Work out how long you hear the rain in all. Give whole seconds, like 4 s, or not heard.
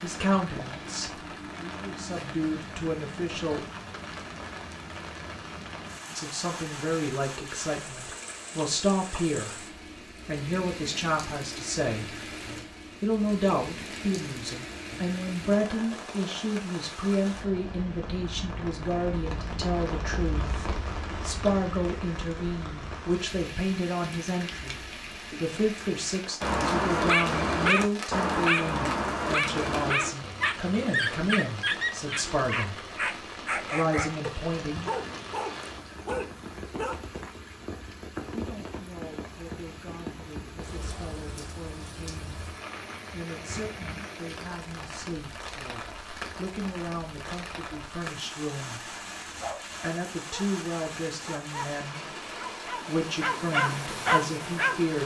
55 s.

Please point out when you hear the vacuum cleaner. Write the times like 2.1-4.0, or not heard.
not heard.